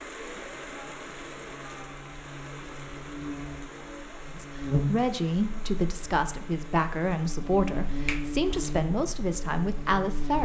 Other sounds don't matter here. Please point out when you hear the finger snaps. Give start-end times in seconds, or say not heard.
8.1-8.8.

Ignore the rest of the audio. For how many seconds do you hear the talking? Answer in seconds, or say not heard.
6 s.